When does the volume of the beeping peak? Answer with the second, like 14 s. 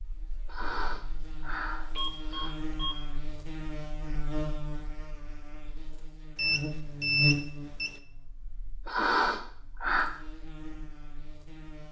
7 s.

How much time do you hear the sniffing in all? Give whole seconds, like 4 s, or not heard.
3 s.